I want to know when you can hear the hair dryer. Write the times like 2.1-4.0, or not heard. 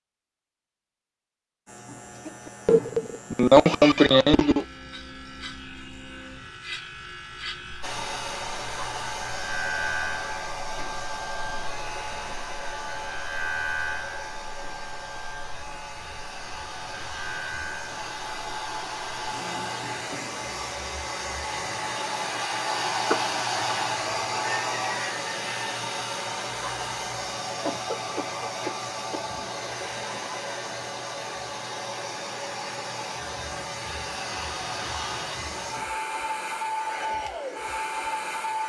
7.8-38.6.